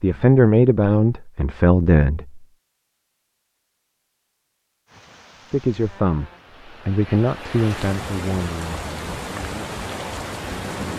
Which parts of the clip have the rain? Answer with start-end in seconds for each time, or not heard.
4.8-10.9.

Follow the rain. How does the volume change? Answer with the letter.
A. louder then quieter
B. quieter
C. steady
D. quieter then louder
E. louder
E.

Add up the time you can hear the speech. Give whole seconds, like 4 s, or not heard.
8 s.